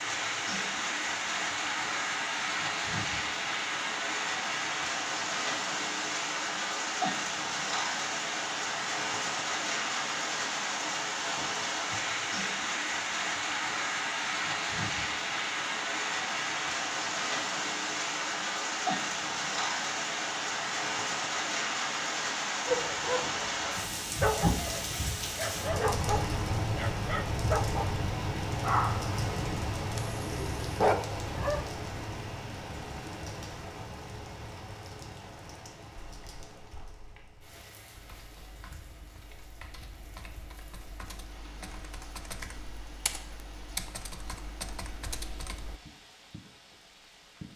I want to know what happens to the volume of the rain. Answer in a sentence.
The volume of the rain goes down.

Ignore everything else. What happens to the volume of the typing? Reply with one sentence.
The volume of the typing goes up.